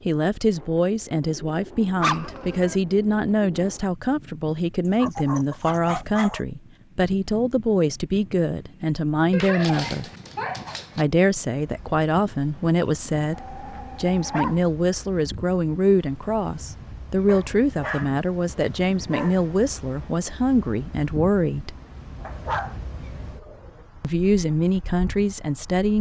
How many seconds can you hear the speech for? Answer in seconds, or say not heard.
23 s.